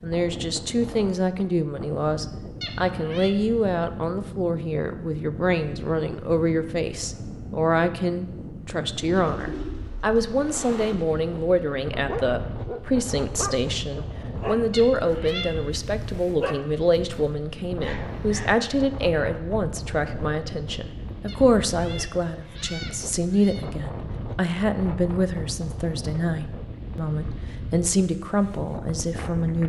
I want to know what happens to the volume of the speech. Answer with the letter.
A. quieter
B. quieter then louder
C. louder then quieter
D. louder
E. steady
E.